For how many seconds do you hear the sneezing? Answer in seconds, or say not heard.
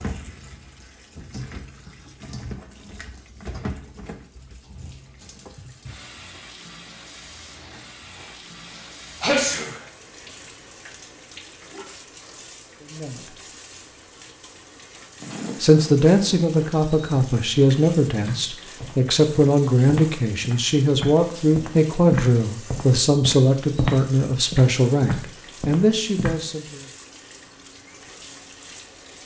2 s.